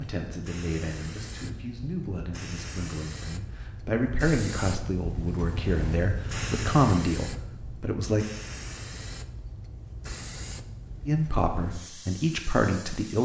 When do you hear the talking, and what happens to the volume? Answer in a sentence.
The talking can be heard from 0.0 to 8.2 s, getting louder; and briefly from 11.1 to 13.2 s.